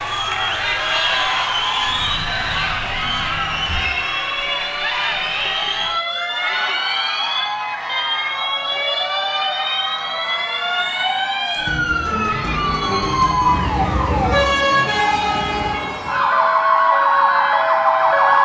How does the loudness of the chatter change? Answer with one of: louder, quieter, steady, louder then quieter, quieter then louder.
quieter.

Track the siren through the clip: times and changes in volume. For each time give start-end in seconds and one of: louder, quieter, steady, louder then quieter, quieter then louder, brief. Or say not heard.
0.0-18.4 louder.